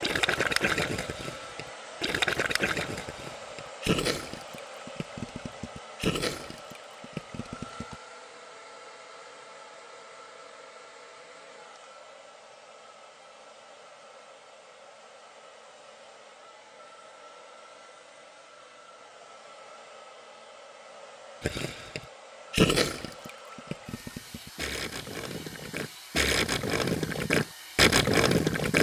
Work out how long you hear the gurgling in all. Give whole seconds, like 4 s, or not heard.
15 s.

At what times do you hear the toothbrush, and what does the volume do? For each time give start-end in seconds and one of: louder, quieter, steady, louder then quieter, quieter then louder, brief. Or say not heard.
not heard.